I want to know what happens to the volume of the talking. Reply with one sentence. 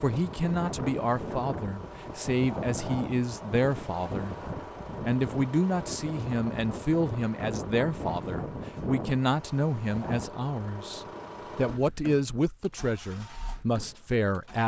The volume of the talking stays about the same.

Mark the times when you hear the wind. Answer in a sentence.
The wind can be heard from 0.0 to 10.3 s.